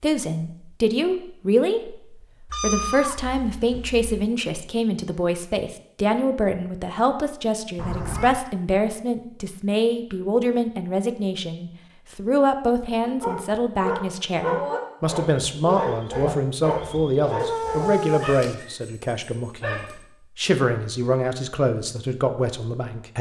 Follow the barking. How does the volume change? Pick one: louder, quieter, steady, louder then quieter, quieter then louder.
quieter.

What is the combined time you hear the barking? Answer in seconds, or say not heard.
7 s.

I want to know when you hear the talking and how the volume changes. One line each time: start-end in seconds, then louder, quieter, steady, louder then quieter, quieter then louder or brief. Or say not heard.
0.0-23.1 steady.